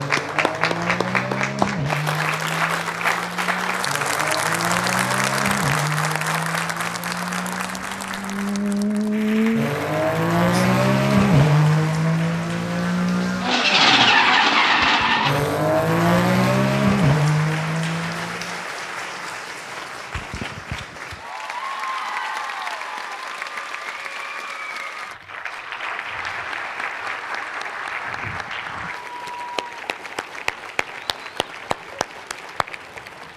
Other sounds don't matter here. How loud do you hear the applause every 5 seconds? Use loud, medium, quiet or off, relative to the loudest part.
loud, loud, medium, medium, medium, medium, medium.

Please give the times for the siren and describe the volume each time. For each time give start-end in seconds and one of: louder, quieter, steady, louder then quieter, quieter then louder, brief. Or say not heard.
not heard.